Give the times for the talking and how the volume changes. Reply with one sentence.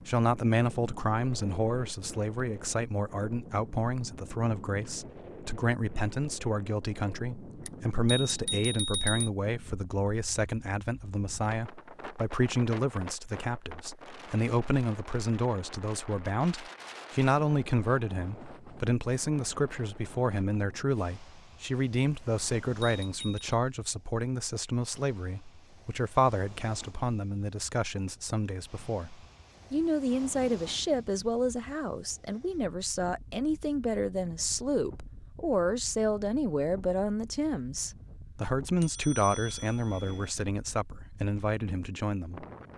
You can hear the talking from 0.1 to 42.5 s, at a steady volume.